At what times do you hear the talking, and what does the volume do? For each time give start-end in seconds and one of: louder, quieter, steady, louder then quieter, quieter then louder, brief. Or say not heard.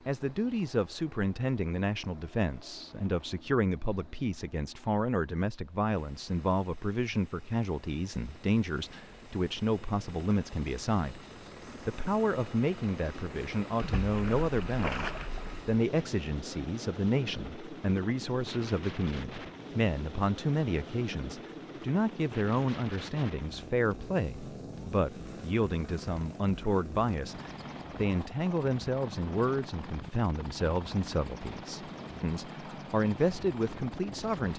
0.1-34.5 steady.